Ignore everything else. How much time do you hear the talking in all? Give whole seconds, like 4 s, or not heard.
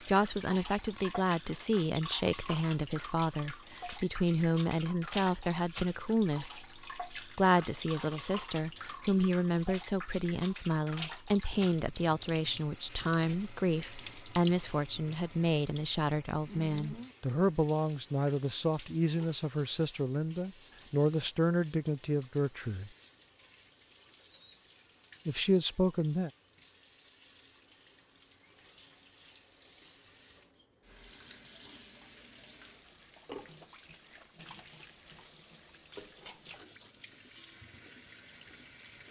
24 s.